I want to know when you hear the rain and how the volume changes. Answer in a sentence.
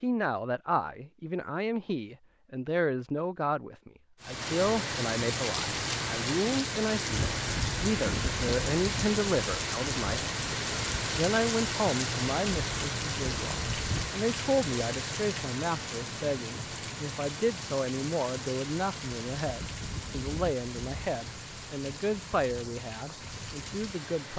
The rain can be heard from 4.2 to 24.3 s, getting quieter.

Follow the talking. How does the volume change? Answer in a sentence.
The loudness of the talking stays about the same.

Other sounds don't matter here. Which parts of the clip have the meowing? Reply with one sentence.
The meowing can't be heard in this clip.